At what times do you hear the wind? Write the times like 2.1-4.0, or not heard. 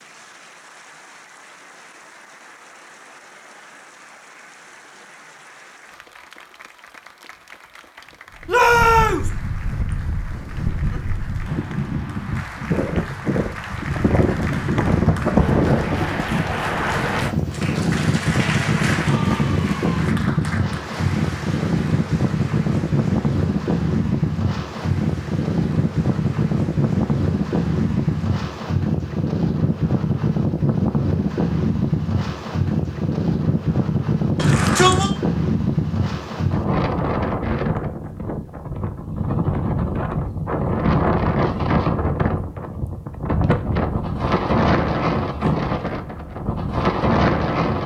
8.3-47.8.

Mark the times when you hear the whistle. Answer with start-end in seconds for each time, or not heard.
not heard.